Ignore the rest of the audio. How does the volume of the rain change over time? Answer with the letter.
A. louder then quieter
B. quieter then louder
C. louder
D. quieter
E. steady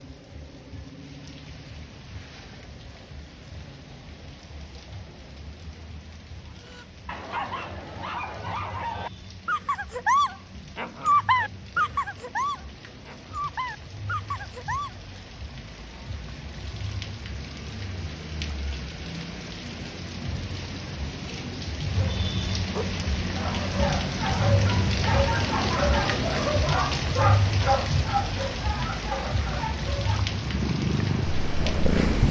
C.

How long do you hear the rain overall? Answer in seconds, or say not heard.
32 s.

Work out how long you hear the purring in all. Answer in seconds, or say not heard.
2 s.